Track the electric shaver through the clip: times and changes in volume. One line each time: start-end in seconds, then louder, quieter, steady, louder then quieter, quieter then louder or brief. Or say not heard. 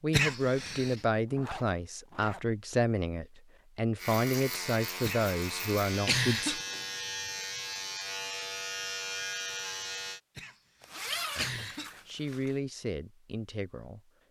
4.0-10.2 steady.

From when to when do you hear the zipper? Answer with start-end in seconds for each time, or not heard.
1.3-2.4, 6.5-7.0, 10.8-12.6.